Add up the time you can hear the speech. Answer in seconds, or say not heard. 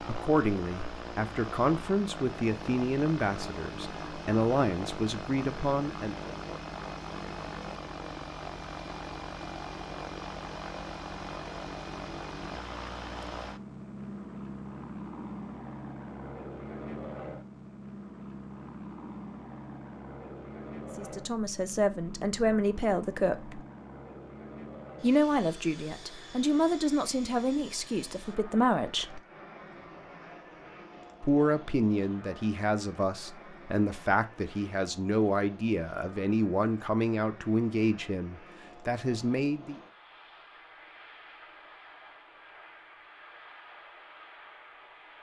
22 s.